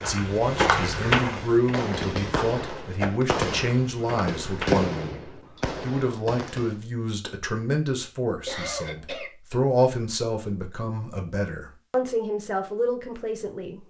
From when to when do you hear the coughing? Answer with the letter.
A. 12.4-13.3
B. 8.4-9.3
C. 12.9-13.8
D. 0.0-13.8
B.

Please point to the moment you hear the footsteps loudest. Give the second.
1 s.